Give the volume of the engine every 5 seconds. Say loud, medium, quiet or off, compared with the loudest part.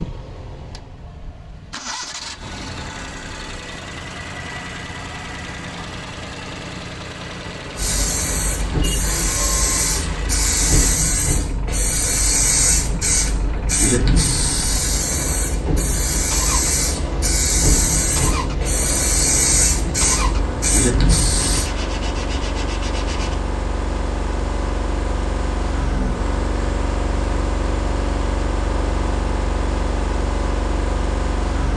medium, medium, medium, loud, loud, loud, loud.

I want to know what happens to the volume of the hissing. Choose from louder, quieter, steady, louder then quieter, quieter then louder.
steady.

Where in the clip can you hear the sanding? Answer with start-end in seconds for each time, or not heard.
21.4-23.4.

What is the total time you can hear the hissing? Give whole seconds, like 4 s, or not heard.
14 s.